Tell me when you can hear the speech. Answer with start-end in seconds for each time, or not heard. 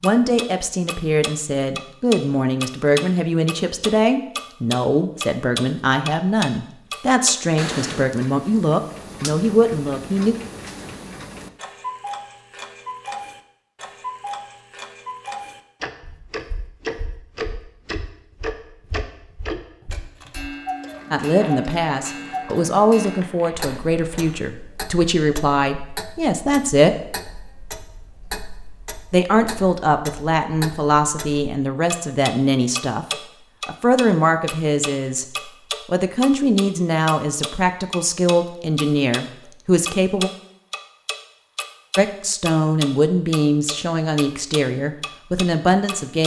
0.0-10.3, 21.1-26.9, 29.1-33.0, 33.6-35.2, 35.9-40.3, 42.0-46.2.